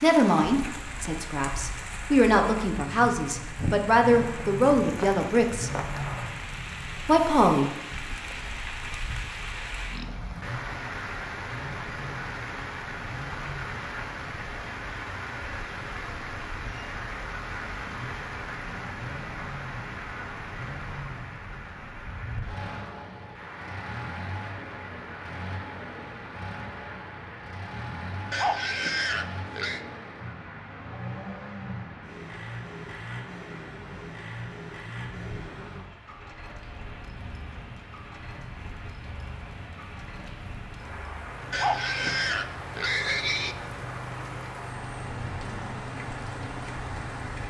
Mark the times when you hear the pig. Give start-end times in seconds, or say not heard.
8.1-10.3, 28.3-29.9, 41.5-43.5.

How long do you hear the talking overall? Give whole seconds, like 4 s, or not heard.
6 s.